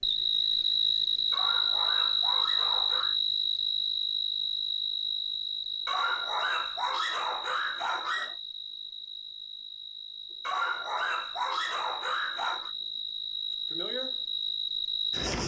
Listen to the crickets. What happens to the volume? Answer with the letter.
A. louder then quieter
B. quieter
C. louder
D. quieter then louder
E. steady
D.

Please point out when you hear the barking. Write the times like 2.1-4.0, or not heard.
1.3-3.1, 5.8-8.3, 10.4-12.7.